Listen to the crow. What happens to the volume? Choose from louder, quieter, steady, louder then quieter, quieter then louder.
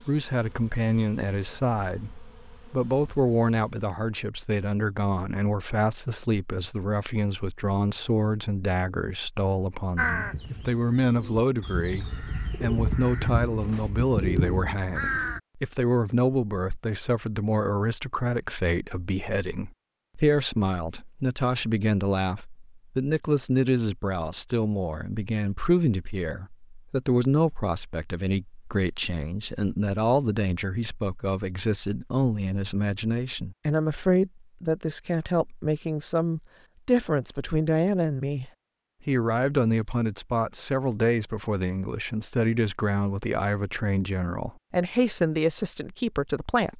louder.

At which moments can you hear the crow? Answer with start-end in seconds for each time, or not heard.
9.9-15.4.